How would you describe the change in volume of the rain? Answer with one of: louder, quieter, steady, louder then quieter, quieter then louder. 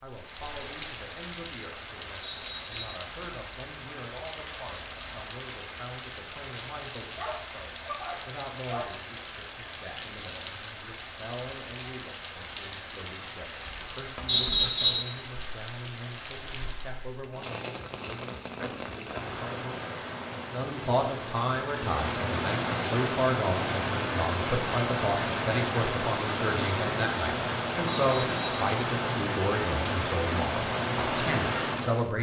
louder.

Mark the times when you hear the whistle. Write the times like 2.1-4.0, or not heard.
2.2-3.0, 14.2-15.1, 27.9-28.4.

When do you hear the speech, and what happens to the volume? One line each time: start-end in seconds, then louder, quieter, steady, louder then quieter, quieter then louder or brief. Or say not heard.
0.0-32.1 louder.